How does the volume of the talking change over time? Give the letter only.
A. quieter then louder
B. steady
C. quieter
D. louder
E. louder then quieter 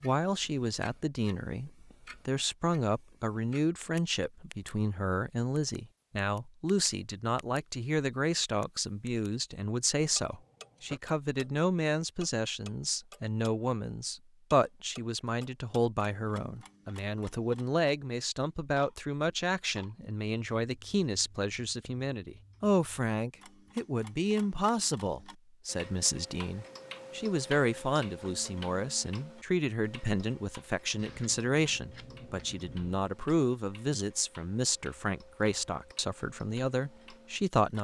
B.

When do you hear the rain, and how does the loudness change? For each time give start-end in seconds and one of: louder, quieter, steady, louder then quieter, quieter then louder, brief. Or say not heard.
not heard.